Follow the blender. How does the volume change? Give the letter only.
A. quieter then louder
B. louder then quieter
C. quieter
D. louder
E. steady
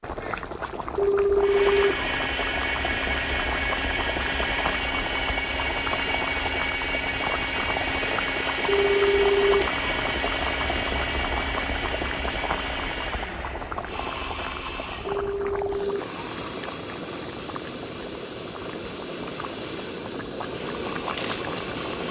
C.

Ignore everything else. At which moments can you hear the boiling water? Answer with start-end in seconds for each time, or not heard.
0.0-22.0.